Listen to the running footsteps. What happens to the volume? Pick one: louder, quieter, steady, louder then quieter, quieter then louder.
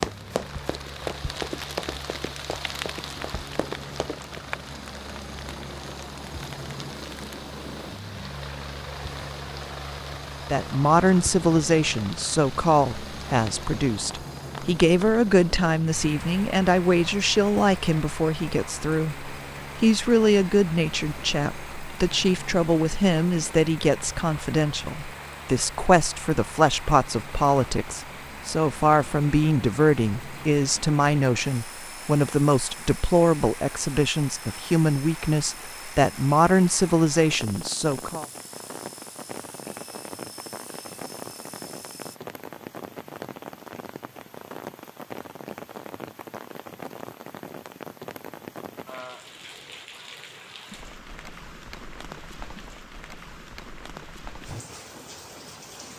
quieter then louder.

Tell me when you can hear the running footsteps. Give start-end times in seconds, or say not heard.
0.0-4.4.